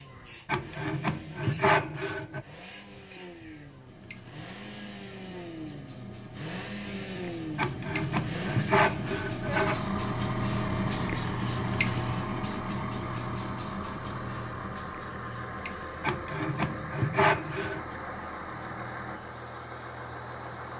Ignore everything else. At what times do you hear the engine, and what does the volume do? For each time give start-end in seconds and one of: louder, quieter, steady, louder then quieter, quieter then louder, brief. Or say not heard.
0.0-20.7 louder.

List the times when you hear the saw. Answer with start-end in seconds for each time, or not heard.
0.5-2.4, 7.5-9.8, 16.0-17.8.